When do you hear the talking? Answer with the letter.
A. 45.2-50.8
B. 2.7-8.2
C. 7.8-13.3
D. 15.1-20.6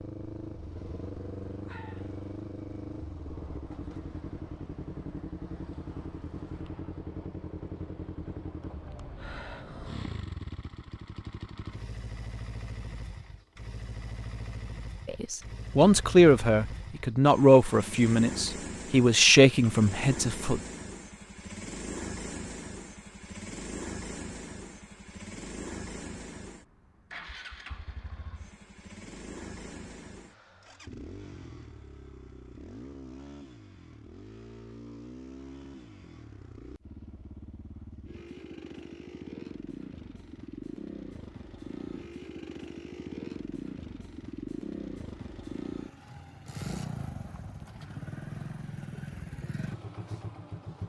D.